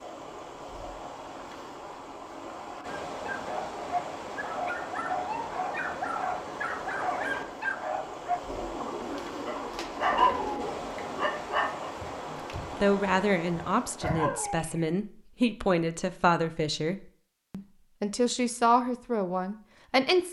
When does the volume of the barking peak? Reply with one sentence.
The loudest moment of the barking is at 10 seconds.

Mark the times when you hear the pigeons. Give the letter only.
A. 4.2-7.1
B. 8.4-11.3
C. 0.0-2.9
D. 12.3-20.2
B.